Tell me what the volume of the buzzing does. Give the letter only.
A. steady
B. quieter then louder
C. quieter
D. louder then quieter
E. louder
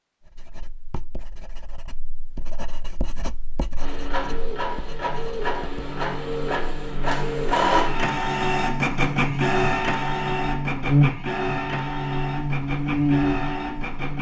E.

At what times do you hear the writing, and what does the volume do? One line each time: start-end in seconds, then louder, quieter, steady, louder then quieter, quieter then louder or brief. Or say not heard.
0.2-5.8 louder then quieter.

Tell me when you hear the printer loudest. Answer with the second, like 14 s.
8 s.